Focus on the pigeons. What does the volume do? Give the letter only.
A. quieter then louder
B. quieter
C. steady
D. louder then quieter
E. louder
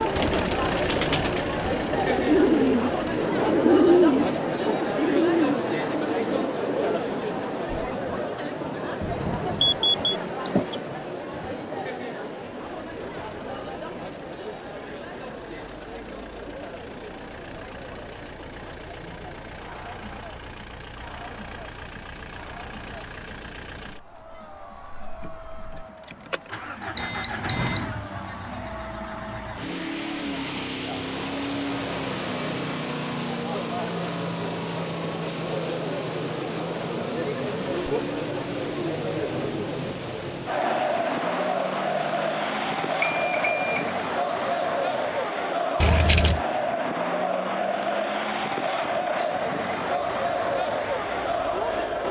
D.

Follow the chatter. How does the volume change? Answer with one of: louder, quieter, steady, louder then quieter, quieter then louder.
quieter then louder.